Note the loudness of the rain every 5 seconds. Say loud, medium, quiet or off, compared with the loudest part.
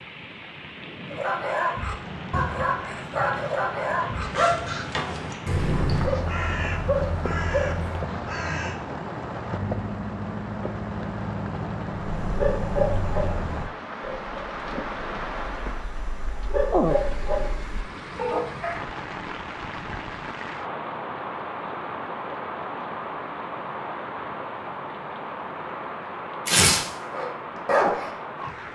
medium, loud, loud, loud, loud, loud.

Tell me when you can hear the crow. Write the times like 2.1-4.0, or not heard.
4.2-8.8.